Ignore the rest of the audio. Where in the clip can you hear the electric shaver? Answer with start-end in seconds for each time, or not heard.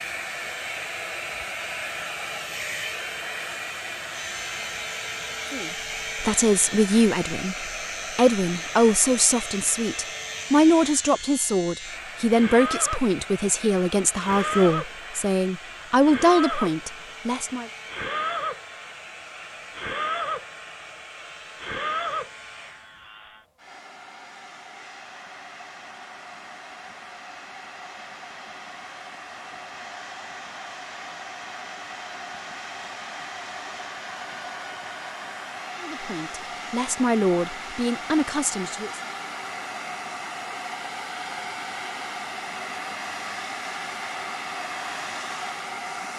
4.1-23.4.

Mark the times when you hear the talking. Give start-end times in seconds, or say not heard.
5.5-17.7, 35.8-39.0.